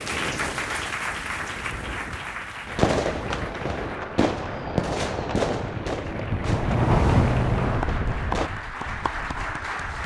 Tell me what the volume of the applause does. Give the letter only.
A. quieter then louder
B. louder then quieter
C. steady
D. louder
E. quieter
A.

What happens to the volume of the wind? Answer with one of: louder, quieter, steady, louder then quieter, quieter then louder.
louder then quieter.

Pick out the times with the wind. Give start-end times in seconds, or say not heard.
0.0-10.0.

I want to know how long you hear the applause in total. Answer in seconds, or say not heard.
10 s.